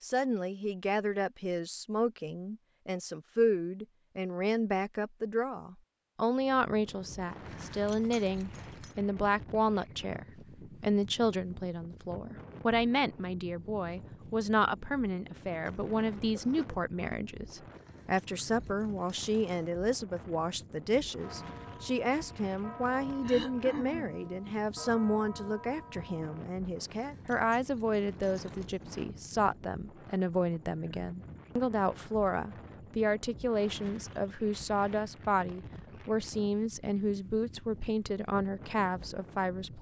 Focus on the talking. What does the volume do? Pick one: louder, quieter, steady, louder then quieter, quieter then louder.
steady.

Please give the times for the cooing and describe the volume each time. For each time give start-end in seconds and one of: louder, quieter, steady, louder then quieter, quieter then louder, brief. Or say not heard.
not heard.